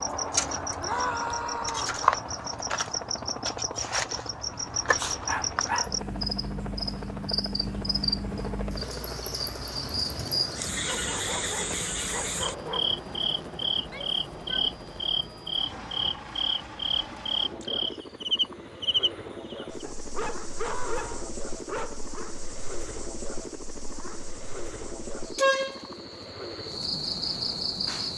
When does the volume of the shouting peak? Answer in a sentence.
The loudest moment of the shouting is at 1 second.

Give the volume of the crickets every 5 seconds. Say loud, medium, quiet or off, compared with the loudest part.
loud, loud, loud, loud, quiet, loud.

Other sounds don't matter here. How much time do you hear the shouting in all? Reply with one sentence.
The shouting can be heard for 3 seconds in total.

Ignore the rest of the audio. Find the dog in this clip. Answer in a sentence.
You can hear the dog from 5.0 to 6.0 s, from 10.8 to 13.0 s and from 19.8 to 22.3 s.